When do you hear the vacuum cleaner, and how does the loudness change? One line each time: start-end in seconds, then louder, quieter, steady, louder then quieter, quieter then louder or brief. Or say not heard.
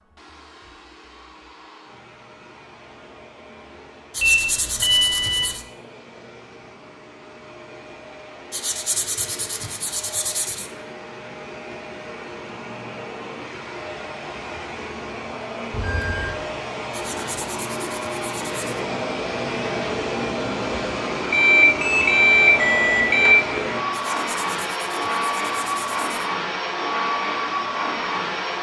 0.0-28.5 louder.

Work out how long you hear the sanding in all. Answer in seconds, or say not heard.
8 s.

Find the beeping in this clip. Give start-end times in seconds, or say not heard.
4.2-5.5, 15.7-16.4, 21.3-23.4.